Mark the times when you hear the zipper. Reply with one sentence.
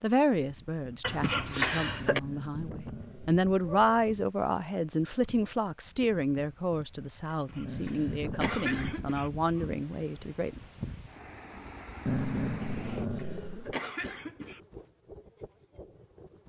You can't hear the zipper here.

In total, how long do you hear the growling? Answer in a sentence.
You can hear the growling for 5 seconds altogether.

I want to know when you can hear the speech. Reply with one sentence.
You can hear the speech from 0.0 to 10.6 s.